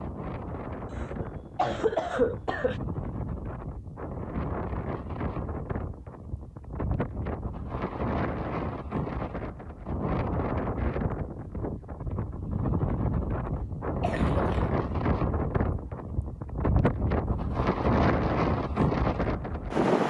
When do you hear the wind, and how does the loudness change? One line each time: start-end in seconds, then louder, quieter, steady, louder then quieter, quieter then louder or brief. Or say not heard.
0.0-20.0 louder.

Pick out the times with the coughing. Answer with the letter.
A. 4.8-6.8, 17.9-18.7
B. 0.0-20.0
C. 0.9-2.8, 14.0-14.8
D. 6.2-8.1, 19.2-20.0
C.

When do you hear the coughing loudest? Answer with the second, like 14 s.
2 s.